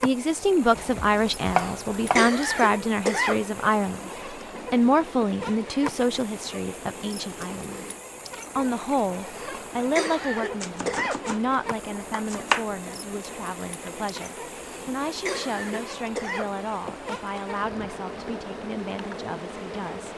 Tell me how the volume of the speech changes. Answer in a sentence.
The loudness of the speech goes down.